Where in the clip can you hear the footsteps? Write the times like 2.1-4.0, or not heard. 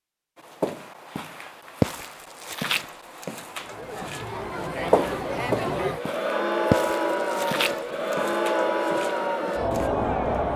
0.3-9.9.